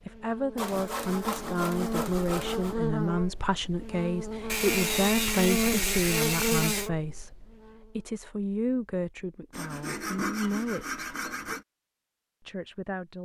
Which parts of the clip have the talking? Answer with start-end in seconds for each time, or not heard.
0.1-11.0, 12.4-13.2.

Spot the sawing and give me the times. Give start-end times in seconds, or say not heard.
0.6-2.8, 4.5-6.9, 9.5-11.7.